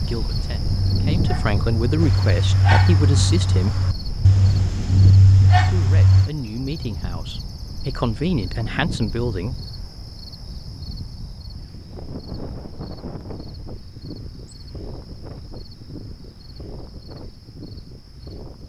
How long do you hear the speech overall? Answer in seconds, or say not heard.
8 s.